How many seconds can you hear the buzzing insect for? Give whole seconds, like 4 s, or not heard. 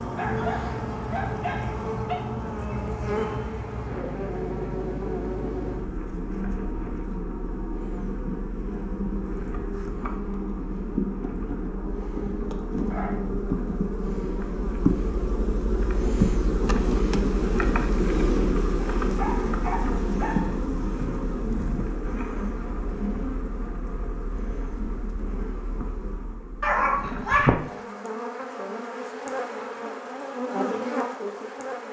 32 s.